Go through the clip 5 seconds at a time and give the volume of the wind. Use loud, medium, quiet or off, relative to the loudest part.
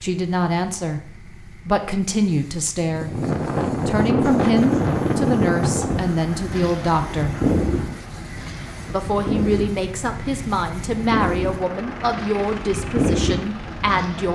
loud, loud, medium.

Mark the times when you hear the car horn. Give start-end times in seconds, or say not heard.
not heard.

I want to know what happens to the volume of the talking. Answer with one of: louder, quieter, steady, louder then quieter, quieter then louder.
steady.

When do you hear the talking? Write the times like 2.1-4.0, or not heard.
0.0-3.2, 3.9-7.3, 8.9-14.3.